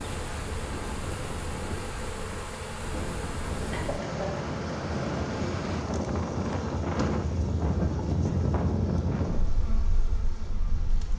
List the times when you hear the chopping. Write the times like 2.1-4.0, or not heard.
not heard.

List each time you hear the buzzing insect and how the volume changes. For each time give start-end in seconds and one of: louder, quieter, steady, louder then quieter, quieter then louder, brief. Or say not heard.
0.0-11.1 quieter.